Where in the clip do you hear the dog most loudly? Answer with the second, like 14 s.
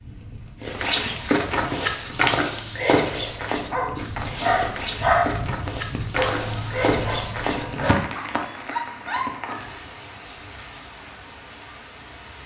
5 s.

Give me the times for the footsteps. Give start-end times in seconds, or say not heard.
0.6-8.1.